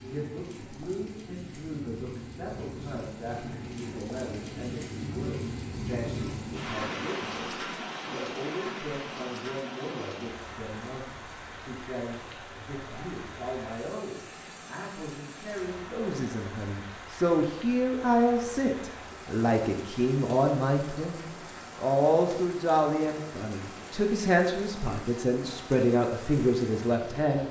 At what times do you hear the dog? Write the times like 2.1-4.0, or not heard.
not heard.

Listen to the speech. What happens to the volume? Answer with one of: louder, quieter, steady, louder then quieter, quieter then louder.
louder.